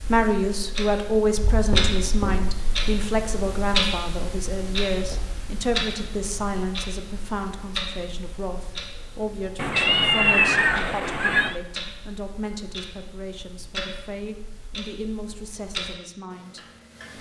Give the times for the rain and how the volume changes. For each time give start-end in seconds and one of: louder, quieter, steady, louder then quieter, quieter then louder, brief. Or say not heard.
not heard.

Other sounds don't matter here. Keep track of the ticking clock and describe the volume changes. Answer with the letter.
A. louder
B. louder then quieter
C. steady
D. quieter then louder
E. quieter
E.